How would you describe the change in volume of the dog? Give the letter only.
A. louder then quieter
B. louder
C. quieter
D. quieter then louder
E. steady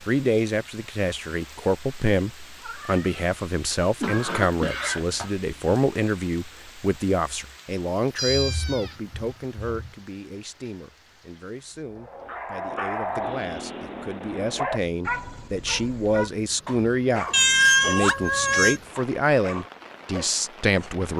C.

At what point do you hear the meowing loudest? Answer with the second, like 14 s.
18 s.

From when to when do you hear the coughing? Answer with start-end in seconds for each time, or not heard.
4.0-5.8.